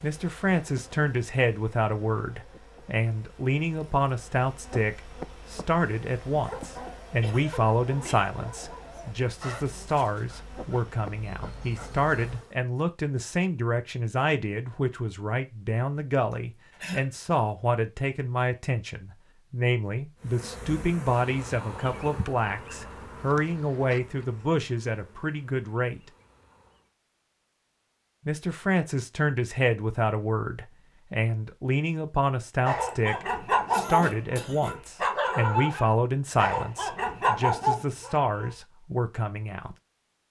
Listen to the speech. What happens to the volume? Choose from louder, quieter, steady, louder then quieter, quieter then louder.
steady.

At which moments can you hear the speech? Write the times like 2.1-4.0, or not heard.
0.0-26.0, 28.2-39.8.